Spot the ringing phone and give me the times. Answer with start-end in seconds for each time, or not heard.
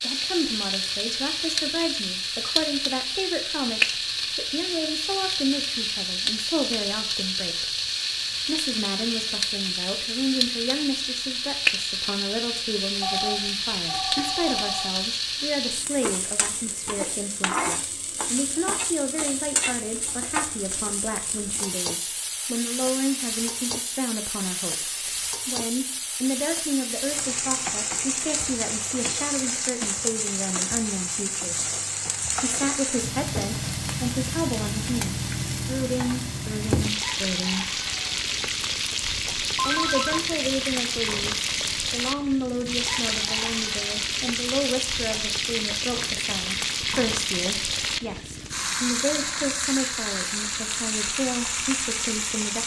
13.0-15.1, 39.5-40.3.